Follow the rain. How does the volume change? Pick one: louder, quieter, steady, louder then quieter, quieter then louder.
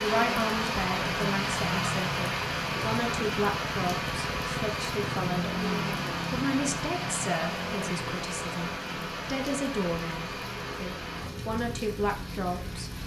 quieter.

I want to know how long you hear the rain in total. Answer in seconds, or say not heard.
13 s.